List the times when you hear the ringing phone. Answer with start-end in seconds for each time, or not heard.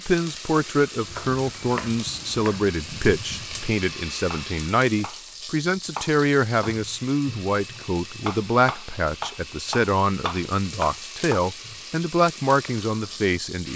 not heard.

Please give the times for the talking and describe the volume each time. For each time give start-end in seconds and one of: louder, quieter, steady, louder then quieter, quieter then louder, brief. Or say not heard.
0.1-13.7 steady.